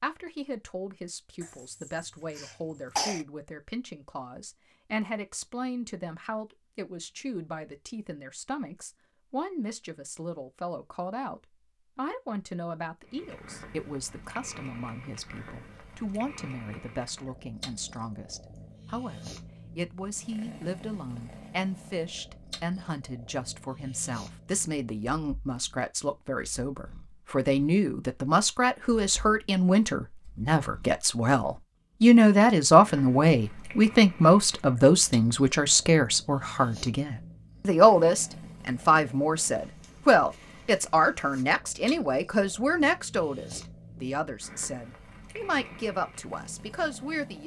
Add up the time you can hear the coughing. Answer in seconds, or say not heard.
2 s.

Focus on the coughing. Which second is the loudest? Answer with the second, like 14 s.
3 s.